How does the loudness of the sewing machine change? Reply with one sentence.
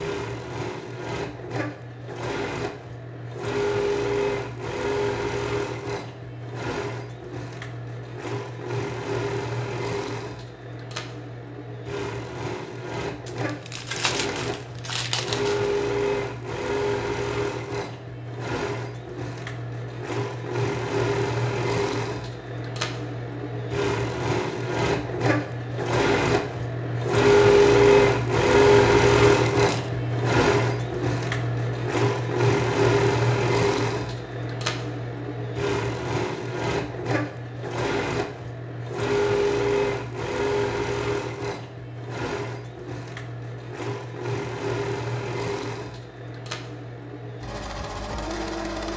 The loudness of the sewing machine goes up, then down.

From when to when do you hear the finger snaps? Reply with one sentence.
You can't hear the finger snaps here.